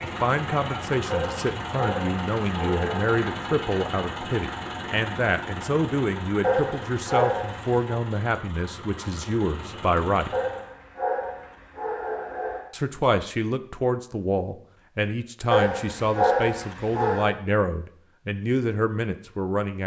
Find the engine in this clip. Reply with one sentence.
The engine can be heard from 0.0 to 10.8 s.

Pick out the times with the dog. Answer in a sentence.
You can hear the dog from 1.1 to 3.1 s, from 6.4 to 7.8 s, from 10.3 to 12.7 s and from 15.5 to 17.4 s.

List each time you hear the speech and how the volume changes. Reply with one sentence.
The speech can be heard from 0.0 to 10.3 s, at a steady volume; and from 12.7 to 19.8 s, at a steady volume.